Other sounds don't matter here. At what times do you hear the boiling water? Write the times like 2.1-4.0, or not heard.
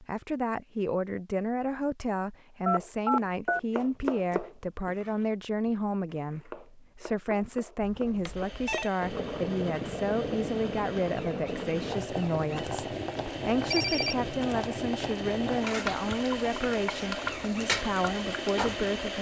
9.0-19.1.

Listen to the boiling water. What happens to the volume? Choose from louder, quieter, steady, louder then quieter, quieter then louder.
steady.